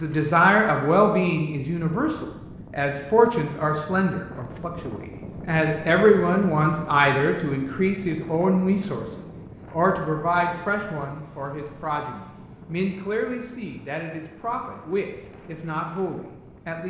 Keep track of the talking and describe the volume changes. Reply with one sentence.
The volume of the talking goes down.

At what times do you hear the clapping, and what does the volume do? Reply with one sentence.
You can't hear the clapping here.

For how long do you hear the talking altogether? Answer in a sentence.
The talking can be heard for 17 seconds in total.